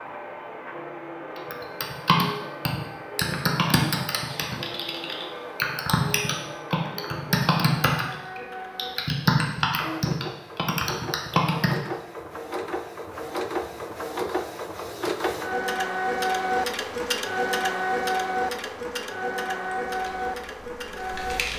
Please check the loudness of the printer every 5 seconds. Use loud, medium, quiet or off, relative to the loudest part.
medium, medium, medium, loud, medium.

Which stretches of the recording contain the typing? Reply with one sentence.
You can hear the typing from 1.4 to 11.8 s and from 19.9 to 21.5 s.